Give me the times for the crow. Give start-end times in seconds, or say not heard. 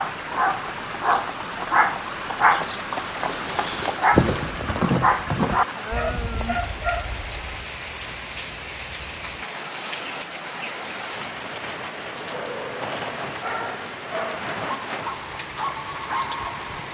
not heard.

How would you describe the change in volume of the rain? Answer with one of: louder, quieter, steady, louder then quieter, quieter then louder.
steady.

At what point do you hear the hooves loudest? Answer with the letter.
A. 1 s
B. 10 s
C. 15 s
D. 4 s
D.